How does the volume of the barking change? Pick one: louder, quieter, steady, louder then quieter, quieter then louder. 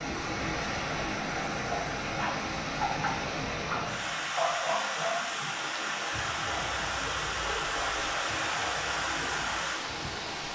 quieter.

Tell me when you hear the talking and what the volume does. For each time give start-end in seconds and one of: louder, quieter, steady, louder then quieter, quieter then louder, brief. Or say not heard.
not heard.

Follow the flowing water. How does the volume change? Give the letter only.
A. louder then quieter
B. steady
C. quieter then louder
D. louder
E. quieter
B.